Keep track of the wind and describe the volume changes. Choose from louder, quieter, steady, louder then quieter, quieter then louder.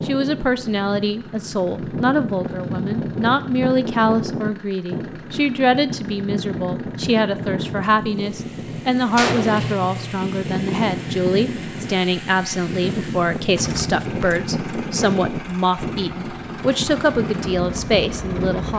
steady.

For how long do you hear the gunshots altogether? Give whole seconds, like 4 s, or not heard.
2 s.